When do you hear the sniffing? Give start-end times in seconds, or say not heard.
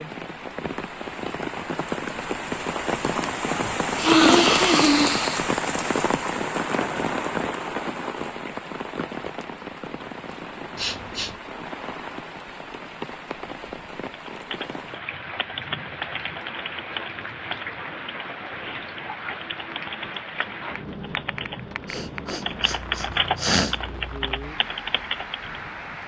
3.6-5.4, 10.8-11.3, 21.9-23.8.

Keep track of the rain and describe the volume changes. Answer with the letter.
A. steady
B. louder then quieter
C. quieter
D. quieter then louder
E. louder
C.